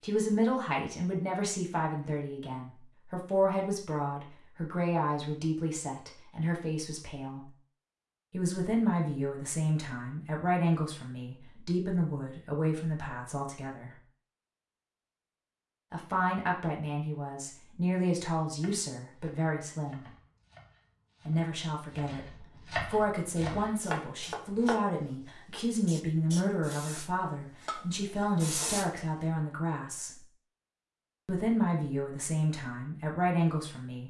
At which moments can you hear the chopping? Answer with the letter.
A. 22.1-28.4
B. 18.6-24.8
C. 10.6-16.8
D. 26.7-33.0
B.